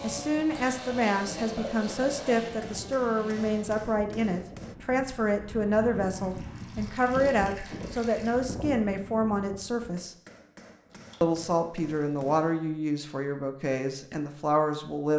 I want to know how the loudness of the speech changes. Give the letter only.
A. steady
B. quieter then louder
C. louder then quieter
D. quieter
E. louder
A.